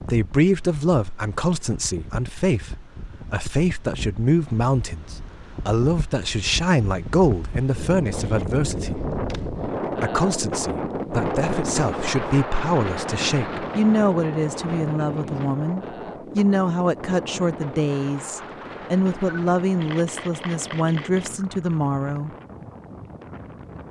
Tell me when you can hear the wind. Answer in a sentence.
You can hear the wind from 0.0 to 23.8 s.